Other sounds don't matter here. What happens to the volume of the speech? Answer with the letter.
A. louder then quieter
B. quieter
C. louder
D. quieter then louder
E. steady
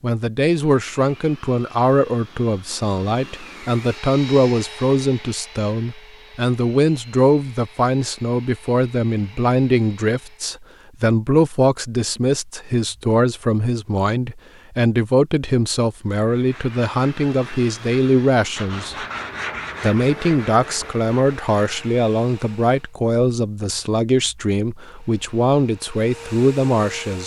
E.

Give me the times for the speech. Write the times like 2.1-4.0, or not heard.
0.0-18.9, 19.8-27.2.